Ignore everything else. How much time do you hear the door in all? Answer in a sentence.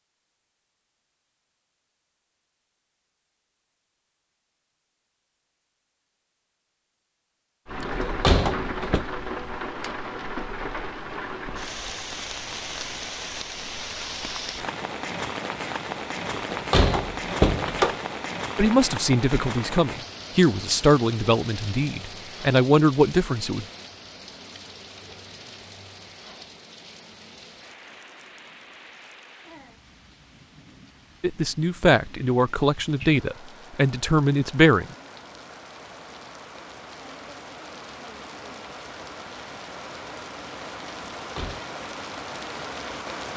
You can hear the door for 3 seconds altogether.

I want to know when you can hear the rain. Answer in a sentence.
The rain can be heard from 7.7 to 43.3 s.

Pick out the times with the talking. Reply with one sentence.
The talking can be heard from 18.6 to 23.6 s and from 31.2 to 34.9 s.